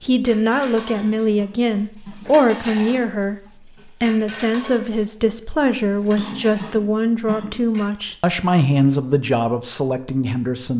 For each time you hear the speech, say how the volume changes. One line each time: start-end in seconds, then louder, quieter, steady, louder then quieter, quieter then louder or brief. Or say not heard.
0.0-10.7 steady.